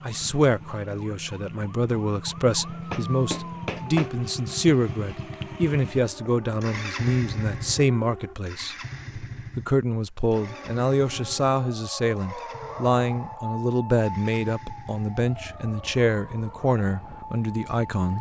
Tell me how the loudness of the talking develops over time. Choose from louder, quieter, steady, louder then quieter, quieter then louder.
steady.